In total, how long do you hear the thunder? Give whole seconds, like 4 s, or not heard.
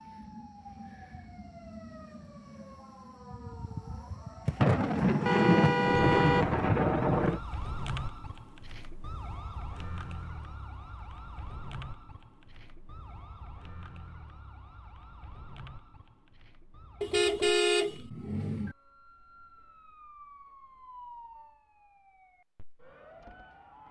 3 s.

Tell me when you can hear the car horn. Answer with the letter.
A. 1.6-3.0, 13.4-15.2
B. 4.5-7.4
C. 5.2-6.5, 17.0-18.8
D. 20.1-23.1
C.